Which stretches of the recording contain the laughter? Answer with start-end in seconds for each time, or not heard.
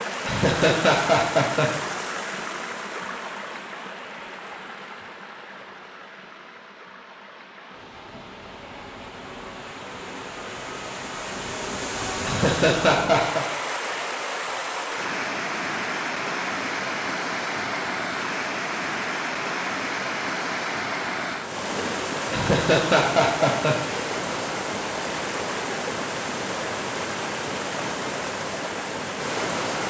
0.2-1.7, 12.2-13.4, 22.3-23.9.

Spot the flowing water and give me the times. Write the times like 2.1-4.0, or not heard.
0.0-29.8.